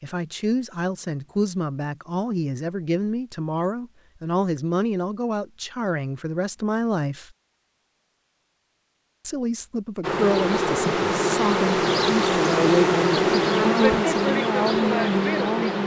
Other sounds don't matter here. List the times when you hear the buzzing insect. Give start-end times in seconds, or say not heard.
10.0-15.8.